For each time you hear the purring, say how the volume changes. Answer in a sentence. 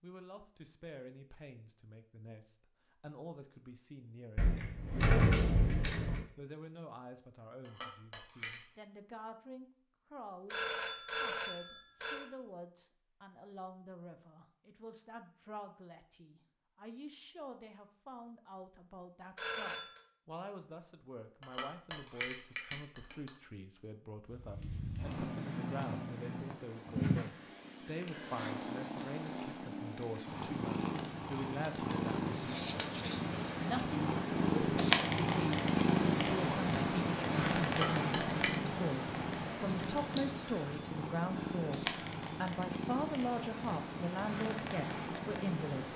You can hear the purring from 24.2 to 45.9 s, getting louder then quieter.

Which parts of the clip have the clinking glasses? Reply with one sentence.
The clinking glasses can be heard from 7.7 to 8.7 s, from 21.4 to 23.3 s and from 37.6 to 38.6 s.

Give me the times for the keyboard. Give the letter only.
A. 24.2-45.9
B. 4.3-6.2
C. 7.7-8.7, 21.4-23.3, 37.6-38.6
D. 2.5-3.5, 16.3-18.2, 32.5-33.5
B.